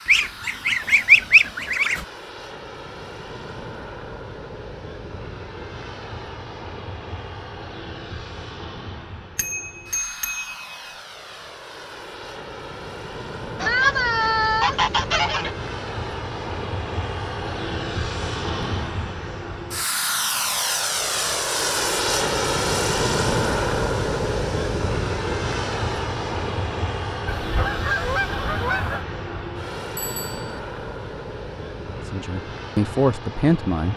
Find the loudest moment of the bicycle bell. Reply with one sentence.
The volume of the bicycle bell peaks at 10 seconds.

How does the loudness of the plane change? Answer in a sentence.
The volume of the plane goes up, then down.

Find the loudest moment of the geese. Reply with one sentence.
The volume of the geese peaks at 1 second.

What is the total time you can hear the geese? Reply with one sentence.
The geese can be heard for 6 seconds in total.